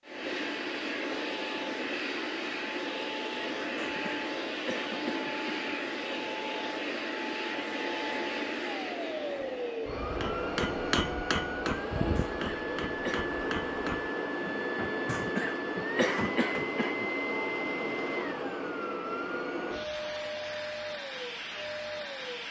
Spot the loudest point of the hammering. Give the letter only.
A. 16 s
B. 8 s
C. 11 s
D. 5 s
C.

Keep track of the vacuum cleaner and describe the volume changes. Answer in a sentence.
The loudness of the vacuum cleaner stays about the same.